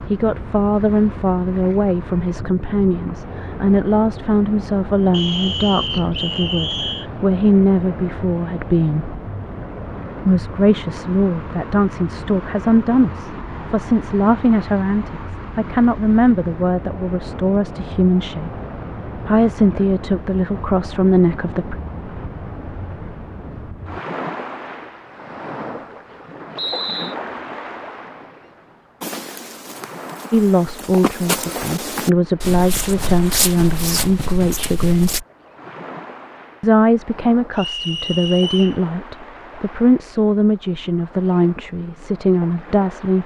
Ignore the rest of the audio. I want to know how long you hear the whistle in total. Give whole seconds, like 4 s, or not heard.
4 s.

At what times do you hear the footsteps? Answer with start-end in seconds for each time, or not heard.
29.0-35.2.